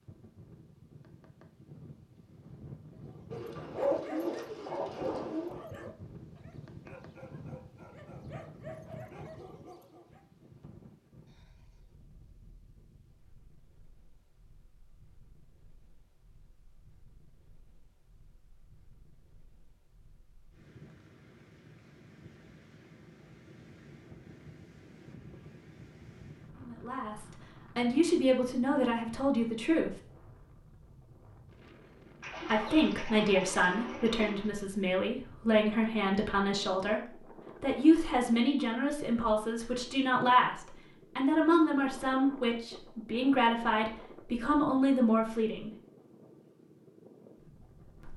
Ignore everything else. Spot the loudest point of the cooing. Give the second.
4 s.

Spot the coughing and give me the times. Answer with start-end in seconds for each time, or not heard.
not heard.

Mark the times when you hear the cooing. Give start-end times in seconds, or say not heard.
3.3-5.5, 32.2-34.5.